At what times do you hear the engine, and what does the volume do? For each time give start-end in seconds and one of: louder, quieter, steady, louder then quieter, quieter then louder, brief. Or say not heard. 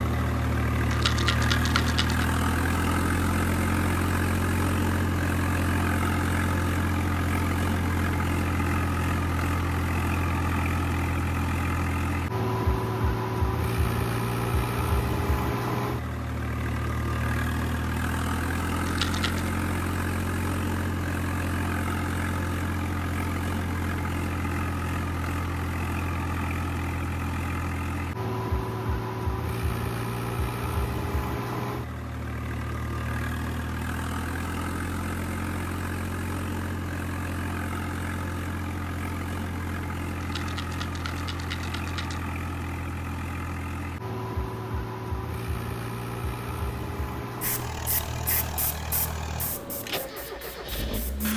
0.0-51.3 quieter.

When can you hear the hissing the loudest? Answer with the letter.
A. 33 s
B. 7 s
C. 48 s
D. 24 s
C.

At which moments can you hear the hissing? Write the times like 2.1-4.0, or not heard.
47.4-51.3.